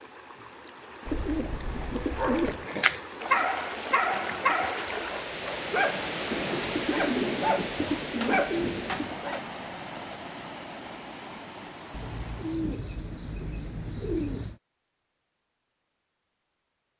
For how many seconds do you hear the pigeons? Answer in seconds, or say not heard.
7 s.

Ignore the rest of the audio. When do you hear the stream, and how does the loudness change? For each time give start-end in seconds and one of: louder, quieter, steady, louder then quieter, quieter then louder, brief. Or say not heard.
0.0-12.8 louder then quieter.